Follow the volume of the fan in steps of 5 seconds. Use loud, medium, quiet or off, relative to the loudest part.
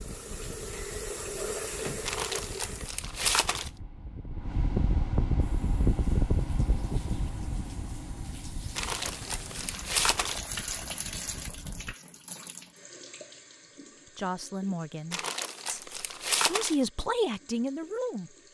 medium, loud, quiet, off.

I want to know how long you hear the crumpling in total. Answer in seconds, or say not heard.
5 s.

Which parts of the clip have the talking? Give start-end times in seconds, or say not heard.
14.2-18.4.